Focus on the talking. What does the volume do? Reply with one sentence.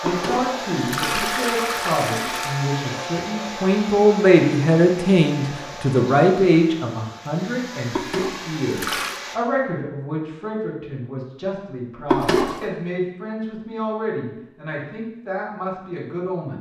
The loudness of the talking goes up, then down.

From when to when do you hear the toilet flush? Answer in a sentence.
You can hear the toilet flush from 0.1 to 2.6 s, from 7.9 to 9.2 s and from 12.1 to 12.6 s.